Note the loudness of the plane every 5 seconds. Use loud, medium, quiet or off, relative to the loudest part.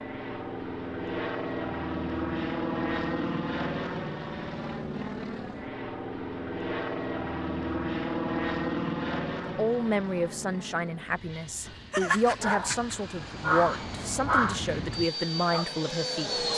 loud, loud, medium, loud.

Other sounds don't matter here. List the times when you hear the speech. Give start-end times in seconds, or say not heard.
9.4-16.5.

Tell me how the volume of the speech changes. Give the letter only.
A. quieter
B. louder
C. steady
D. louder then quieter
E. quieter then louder
C.